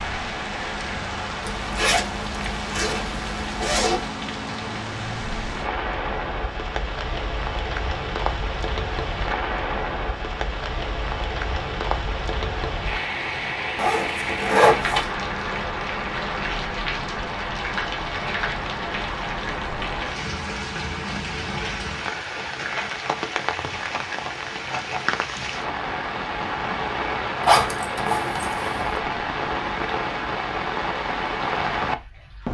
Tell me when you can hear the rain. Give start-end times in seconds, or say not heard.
0.0-32.4.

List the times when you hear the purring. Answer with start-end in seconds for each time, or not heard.
not heard.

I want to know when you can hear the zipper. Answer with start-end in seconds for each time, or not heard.
1.4-4.1, 13.8-15.1, 27.4-28.9.